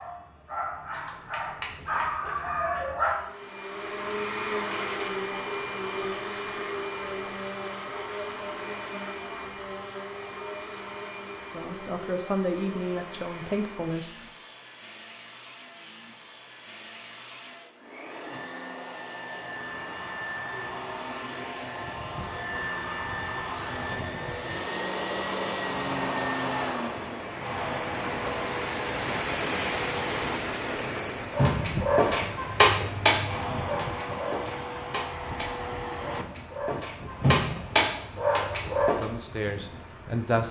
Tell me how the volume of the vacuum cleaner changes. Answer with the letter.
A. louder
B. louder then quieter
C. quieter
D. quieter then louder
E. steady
D.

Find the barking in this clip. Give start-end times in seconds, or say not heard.
0.0-3.2, 31.4-39.0.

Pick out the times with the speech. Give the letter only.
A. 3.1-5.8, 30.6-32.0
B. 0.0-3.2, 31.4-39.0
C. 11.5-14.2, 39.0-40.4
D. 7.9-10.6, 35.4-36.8
C.